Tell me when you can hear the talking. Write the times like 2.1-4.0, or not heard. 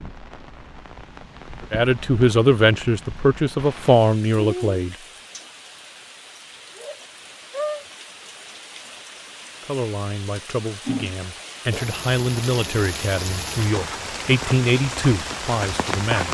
1.7-5.0, 9.6-16.2.